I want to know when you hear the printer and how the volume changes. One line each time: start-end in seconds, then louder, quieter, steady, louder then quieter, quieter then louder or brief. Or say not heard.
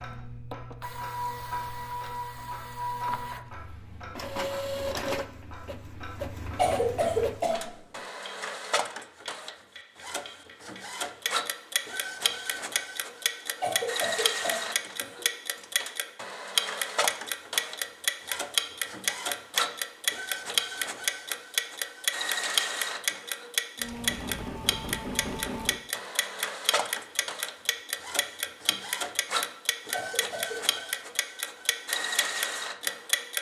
0.0-33.2 steady.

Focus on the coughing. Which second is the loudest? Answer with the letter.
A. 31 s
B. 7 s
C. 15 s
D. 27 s
B.